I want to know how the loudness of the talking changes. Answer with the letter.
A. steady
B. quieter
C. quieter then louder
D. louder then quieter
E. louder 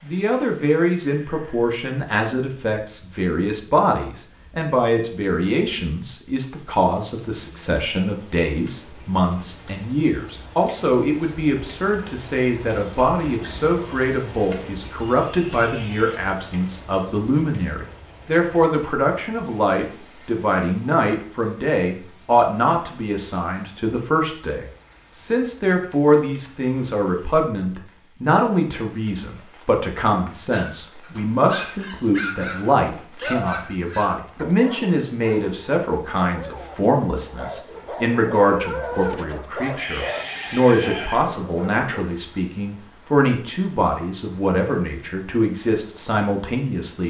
A.